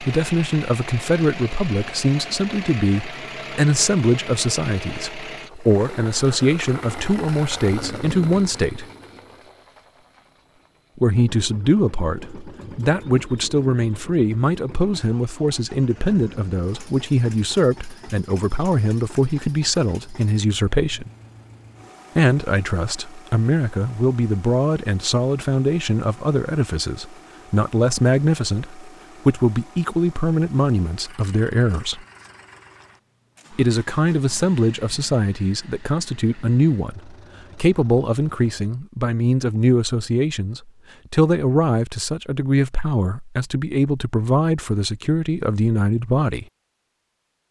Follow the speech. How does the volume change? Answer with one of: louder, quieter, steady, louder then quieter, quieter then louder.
steady.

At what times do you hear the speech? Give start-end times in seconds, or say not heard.
0.0-8.8, 10.9-21.1, 22.1-32.0, 33.5-46.5.